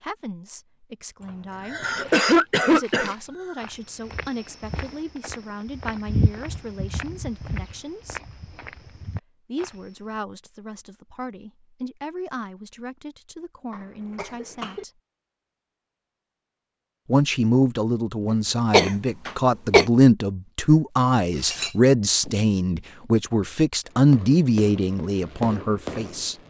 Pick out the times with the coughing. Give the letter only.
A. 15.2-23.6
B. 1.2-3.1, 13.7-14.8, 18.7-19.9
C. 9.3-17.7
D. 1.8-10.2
B.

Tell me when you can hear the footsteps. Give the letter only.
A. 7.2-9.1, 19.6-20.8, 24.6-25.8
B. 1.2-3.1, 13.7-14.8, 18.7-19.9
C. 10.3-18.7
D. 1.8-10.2
D.